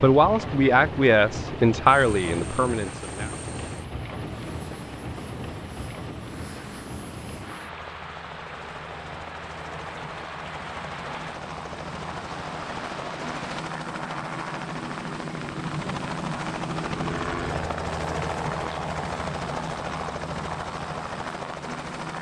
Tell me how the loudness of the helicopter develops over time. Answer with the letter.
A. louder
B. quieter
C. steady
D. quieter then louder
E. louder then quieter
A.